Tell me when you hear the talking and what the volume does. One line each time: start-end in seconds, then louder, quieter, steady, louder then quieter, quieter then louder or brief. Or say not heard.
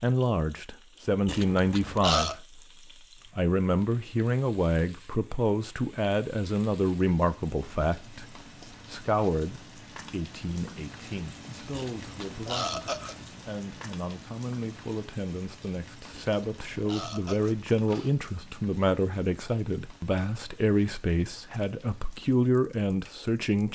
0.0-23.6 quieter then louder.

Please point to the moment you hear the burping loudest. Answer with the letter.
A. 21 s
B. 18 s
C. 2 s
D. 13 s
C.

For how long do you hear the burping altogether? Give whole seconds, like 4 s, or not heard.
5 s.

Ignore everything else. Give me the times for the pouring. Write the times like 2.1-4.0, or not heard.
not heard.